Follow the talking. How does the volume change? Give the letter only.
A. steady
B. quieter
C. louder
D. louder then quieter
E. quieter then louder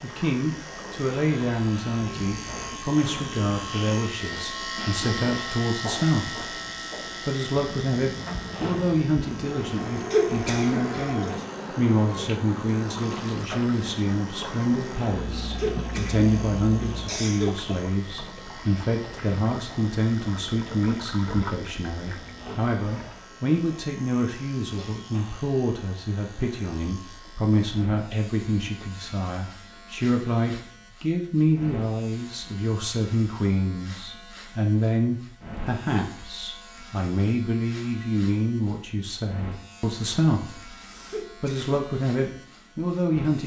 A.